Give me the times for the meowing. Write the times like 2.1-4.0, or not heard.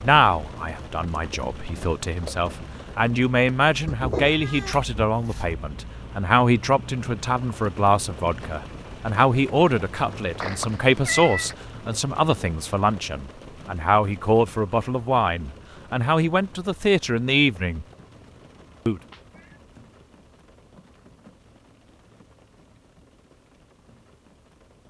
3.9-5.5, 10.4-11.6, 19.0-19.6.